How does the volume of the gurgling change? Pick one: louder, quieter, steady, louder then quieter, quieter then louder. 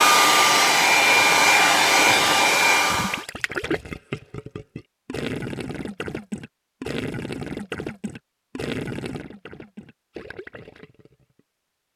quieter.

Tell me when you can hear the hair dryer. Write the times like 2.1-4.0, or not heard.
0.0-3.2.